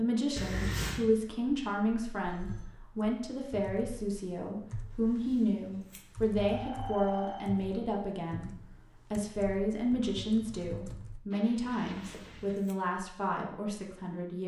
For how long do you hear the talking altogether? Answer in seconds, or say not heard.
14 s.